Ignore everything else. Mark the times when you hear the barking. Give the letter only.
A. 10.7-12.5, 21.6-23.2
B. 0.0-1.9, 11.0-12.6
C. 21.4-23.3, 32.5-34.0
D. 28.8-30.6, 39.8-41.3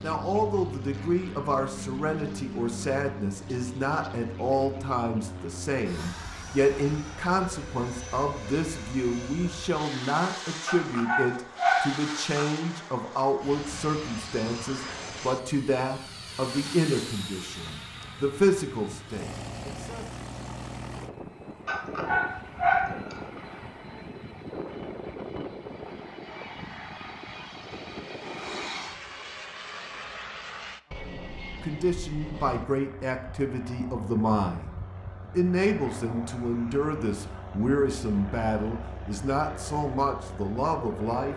A.